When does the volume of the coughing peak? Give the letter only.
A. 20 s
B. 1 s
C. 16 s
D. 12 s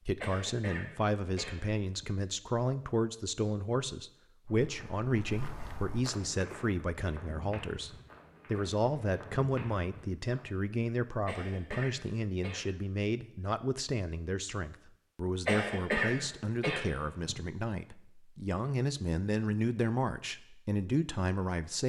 C.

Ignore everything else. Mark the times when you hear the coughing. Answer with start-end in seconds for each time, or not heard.
0.2-2.1, 11.2-12.7, 15.4-17.4.